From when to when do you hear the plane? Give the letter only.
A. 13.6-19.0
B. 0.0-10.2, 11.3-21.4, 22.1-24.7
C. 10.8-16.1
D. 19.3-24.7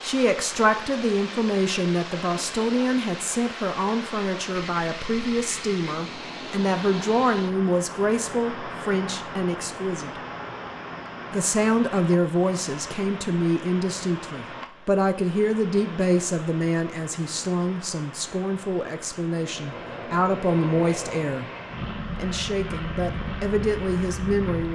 D.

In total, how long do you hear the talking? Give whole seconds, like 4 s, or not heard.
23 s.